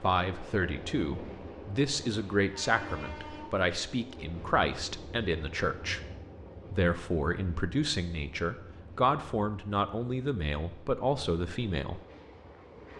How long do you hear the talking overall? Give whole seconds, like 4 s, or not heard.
11 s.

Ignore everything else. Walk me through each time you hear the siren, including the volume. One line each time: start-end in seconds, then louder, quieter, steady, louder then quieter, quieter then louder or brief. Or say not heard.
not heard.